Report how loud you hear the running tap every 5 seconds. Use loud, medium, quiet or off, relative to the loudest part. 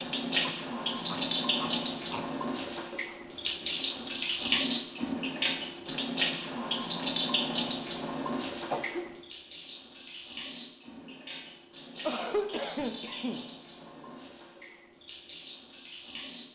loud, loud, quiet, quiet.